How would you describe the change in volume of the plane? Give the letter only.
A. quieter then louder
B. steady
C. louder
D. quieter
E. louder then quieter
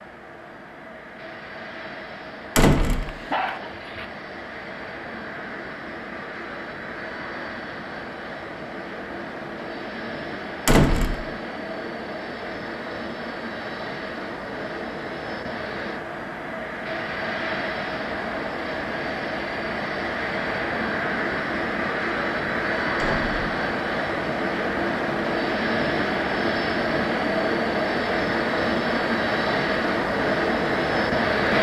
C.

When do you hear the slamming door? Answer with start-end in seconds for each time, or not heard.
2.5-3.1, 10.7-11.2, 22.9-23.4.